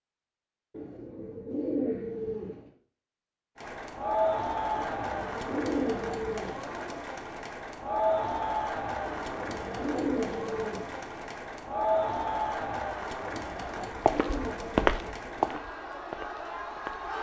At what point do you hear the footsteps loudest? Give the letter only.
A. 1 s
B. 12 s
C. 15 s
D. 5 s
C.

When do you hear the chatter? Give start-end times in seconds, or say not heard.
3.5-17.1.